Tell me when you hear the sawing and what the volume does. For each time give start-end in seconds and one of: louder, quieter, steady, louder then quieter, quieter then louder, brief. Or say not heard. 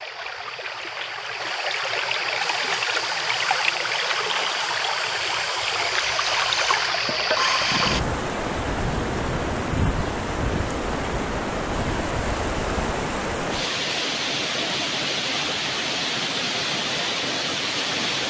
2.4-8.0 louder.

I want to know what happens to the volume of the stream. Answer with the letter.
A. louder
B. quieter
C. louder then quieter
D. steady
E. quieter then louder
D.